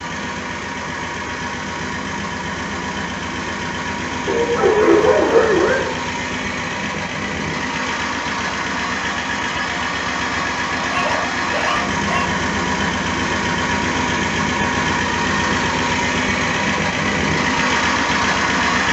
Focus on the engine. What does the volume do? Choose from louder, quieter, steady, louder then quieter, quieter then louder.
louder.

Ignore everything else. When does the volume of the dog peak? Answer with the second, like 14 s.
5 s.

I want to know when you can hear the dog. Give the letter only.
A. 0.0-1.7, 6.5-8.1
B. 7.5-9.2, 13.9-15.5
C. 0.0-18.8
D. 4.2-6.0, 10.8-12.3
D.